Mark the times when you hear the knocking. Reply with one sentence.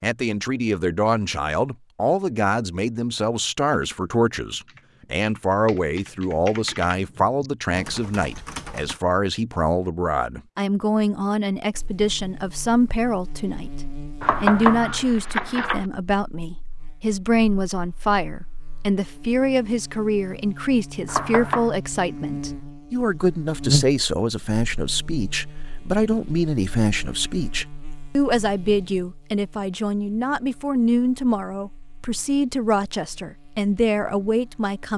You can hear the knocking from 14.2 to 15.8 s and from 21.1 to 21.7 s.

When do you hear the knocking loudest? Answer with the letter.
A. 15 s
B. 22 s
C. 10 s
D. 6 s
A.